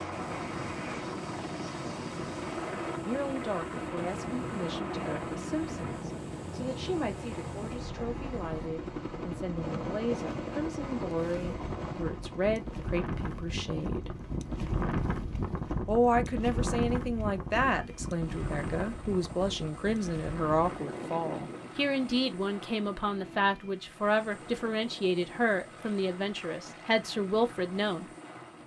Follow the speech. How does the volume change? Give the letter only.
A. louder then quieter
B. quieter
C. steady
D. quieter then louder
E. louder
E.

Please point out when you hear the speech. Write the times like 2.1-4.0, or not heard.
3.0-14.1, 15.8-28.1.